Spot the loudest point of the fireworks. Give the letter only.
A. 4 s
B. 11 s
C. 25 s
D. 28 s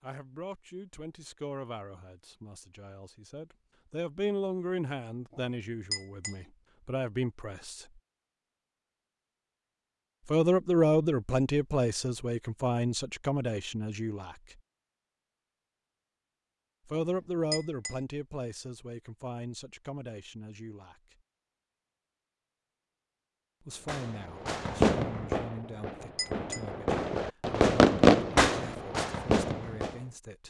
D.